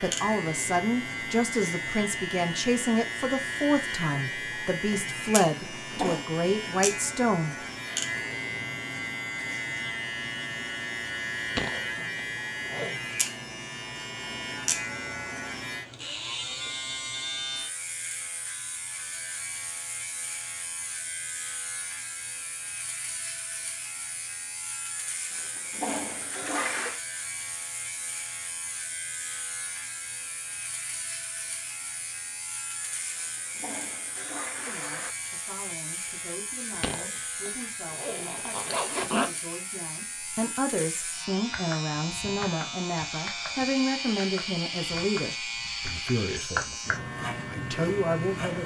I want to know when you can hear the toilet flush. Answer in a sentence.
The toilet flush can be heard from 5.7 to 6.2 s, from 25.3 to 27.0 s and from 33.1 to 35.1 s.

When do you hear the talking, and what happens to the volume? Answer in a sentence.
The talking can be heard from 0.0 to 7.5 s, at a steady volume; and from 34.5 to 48.6 s, getting louder.